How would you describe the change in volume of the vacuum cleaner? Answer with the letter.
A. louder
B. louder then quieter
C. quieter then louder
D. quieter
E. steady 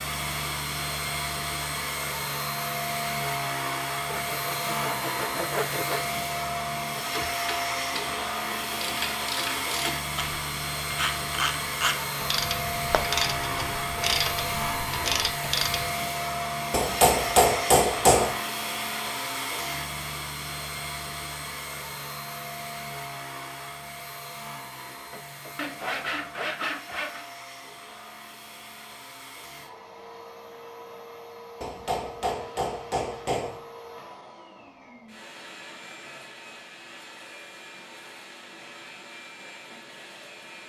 D.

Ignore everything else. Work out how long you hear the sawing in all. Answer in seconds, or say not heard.
4 s.